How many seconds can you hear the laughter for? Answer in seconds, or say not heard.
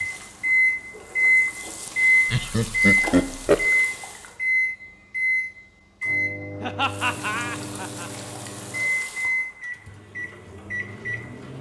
3 s.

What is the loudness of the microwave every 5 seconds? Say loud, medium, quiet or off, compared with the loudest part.
loud, medium, quiet.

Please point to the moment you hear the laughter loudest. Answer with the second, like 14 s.
3 s.